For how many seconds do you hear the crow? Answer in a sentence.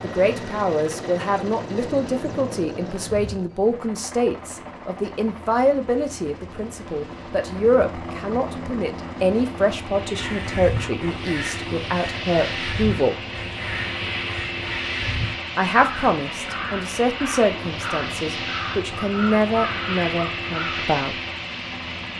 The crow can be heard for 11 seconds in total.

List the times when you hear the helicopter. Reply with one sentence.
The helicopter can be heard from 0.0 to 22.1 s.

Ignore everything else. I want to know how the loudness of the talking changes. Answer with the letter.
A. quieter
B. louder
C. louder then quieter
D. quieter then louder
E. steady
E.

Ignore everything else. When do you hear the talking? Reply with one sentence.
The talking can be heard from 0.0 to 13.2 s and from 15.6 to 21.1 s.